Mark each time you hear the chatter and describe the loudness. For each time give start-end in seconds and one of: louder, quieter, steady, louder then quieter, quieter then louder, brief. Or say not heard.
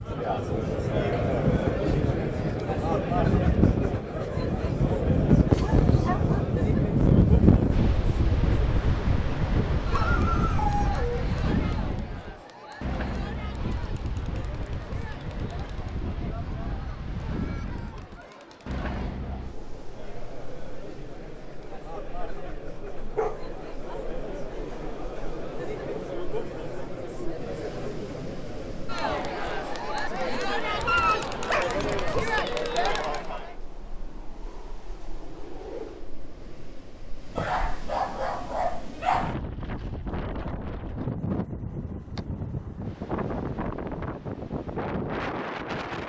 0.0-33.5 quieter then louder.